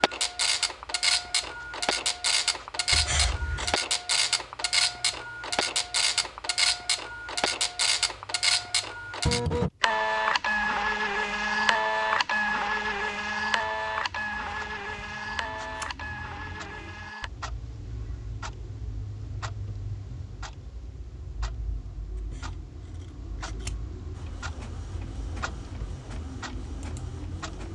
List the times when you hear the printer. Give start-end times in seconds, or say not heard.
0.0-17.3, 24.1-27.7.